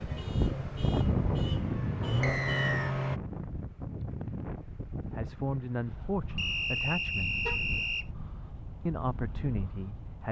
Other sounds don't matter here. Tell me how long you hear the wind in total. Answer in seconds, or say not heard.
10 s.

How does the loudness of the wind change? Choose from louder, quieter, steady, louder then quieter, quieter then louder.
quieter.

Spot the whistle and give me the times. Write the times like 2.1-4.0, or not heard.
2.2-3.0, 6.3-8.1.